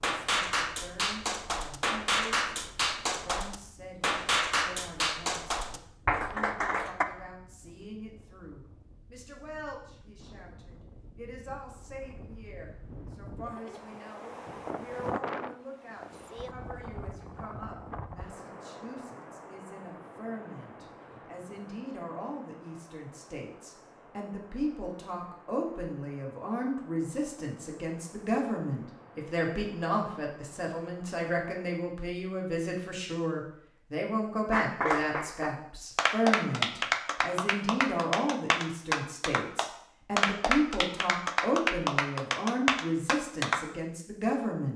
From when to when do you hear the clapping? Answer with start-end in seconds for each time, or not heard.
0.0-7.0, 34.5-43.6.